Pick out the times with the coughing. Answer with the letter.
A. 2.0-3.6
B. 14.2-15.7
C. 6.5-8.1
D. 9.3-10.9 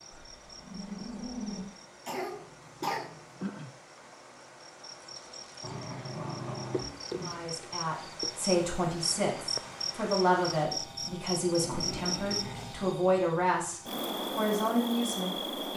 A.